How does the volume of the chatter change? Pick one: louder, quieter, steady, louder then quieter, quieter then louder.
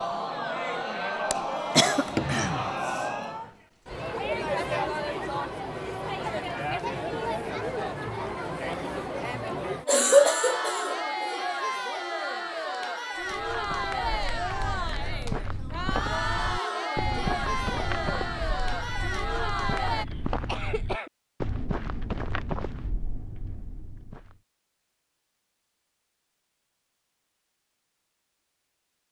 steady.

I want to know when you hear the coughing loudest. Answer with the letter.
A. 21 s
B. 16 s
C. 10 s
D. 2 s
C.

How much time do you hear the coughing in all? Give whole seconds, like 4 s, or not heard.
4 s.